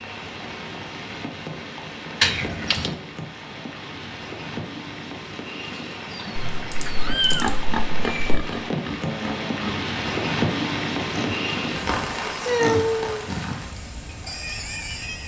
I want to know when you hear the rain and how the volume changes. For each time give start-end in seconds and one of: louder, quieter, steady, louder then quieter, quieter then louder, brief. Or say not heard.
0.0-15.2 louder then quieter.